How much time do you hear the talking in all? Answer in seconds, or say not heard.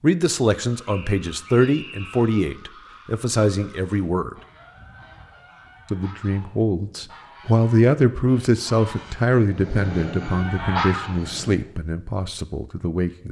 12 s.